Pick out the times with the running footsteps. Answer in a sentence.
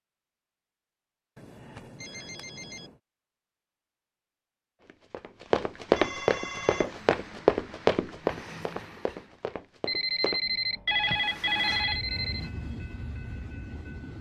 You can hear the running footsteps from 4.8 to 10.4 s.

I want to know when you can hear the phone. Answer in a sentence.
You can hear the phone from 1.4 to 3.0 s, from 6.0 to 7.0 s and from 9.8 to 12.5 s.